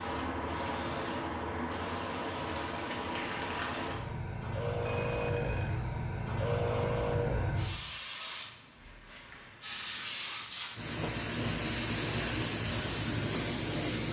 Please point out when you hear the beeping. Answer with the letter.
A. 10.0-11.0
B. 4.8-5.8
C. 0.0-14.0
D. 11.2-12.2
B.